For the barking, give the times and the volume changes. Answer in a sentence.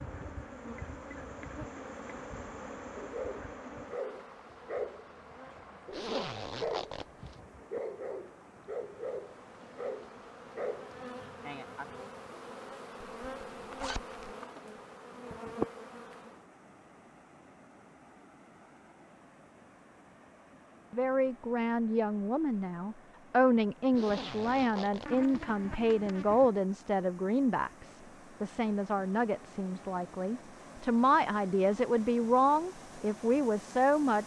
You can hear the barking from 3.0 to 10.9 s, at a steady volume.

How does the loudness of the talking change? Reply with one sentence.
The loudness of the talking stays about the same.